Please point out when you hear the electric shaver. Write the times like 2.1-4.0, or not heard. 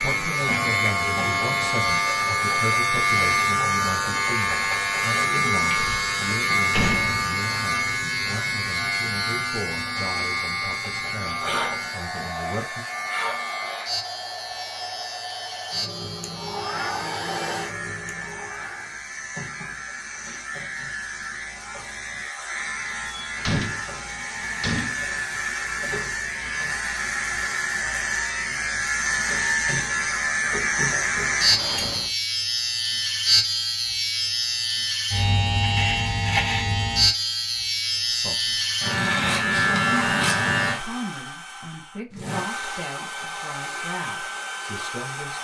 0.0-40.8.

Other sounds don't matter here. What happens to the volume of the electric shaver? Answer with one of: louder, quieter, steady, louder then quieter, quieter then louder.
quieter then louder.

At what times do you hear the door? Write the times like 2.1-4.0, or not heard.
5.8-7.2, 23.2-25.0, 31.4-32.0.